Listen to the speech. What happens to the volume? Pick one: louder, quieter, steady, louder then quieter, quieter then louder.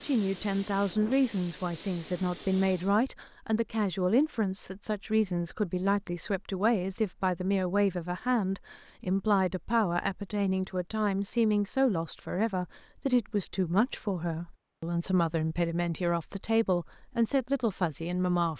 steady.